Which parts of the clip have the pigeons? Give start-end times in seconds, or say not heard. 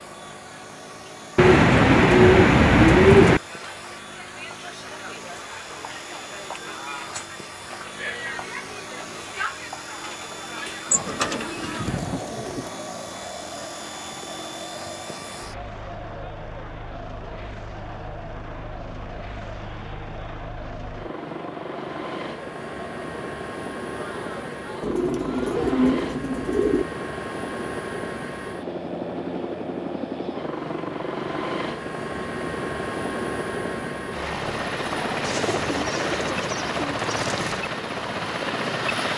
1.4-3.4, 10.9-12.7, 24.8-26.9, 35.2-37.6.